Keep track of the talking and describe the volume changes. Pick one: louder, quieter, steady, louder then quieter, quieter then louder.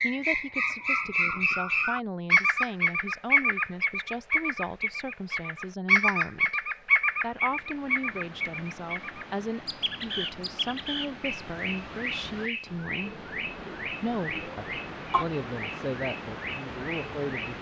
steady.